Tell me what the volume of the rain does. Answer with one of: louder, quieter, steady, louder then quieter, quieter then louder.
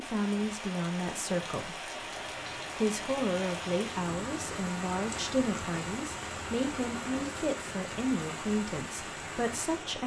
steady.